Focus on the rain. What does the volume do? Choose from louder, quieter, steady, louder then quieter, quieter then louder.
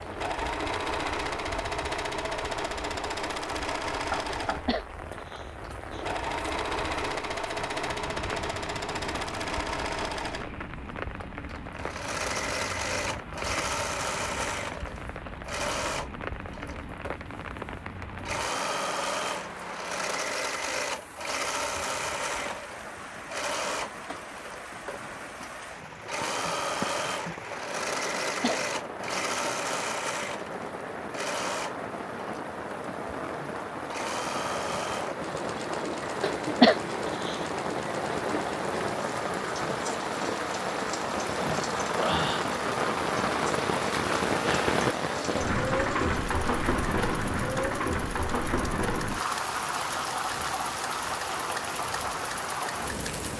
louder.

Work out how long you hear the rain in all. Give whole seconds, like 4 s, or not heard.
53 s.